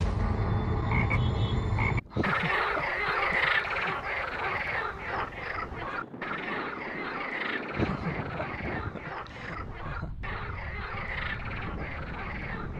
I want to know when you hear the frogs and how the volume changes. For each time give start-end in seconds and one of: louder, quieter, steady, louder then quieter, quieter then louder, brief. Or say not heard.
0.0-12.7 quieter.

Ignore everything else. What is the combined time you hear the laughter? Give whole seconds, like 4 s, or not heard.
4 s.